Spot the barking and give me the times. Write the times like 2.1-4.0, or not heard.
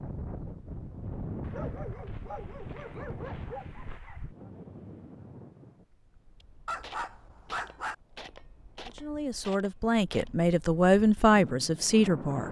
1.4-4.3, 6.7-8.0.